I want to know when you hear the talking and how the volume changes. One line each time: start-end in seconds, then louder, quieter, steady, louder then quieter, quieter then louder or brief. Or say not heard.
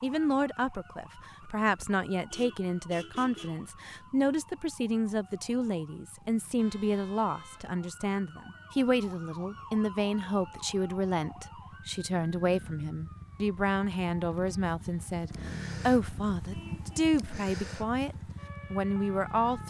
0.0-19.6 steady.